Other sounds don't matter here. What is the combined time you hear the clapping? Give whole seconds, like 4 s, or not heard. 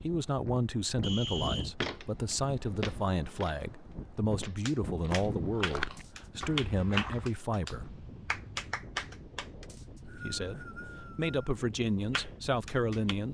6 s.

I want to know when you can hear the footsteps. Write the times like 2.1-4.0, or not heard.
1.8-7.3.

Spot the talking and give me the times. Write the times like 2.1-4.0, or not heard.
0.0-7.9, 10.1-13.2.